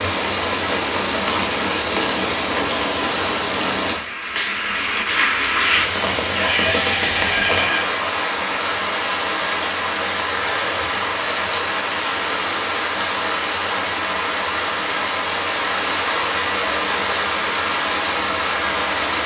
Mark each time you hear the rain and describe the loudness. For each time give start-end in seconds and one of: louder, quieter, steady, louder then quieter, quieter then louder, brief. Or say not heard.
0.0-19.2 steady.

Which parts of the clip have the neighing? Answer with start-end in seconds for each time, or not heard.
6.3-7.9, 10.3-11.1.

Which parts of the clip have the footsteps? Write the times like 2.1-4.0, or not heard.
not heard.